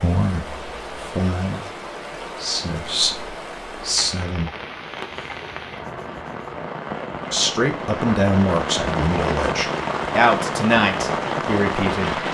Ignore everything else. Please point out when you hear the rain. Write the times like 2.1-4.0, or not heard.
0.0-12.2.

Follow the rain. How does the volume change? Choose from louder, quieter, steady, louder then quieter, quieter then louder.
louder.